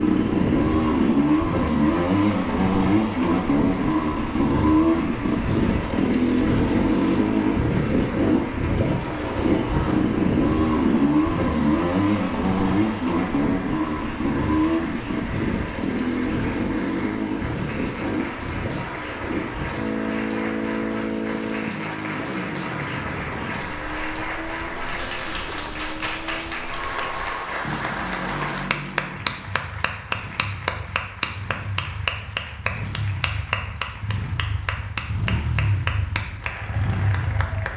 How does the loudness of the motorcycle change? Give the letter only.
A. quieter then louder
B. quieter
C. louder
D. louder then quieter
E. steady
B.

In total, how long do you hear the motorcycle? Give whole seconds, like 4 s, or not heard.
38 s.